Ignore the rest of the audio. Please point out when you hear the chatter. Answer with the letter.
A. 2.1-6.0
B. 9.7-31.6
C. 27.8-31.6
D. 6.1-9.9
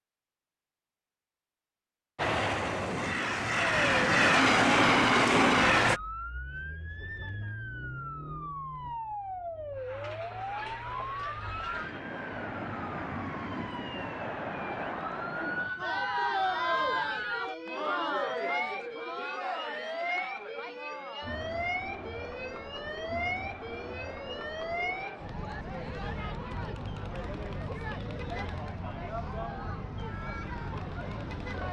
B.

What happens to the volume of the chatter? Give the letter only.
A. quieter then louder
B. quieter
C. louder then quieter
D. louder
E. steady
C.